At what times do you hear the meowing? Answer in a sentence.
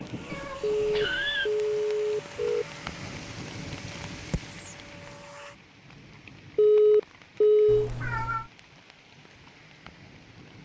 The meowing can be heard from 0.2 to 1.5 s and from 7.7 to 8.5 s.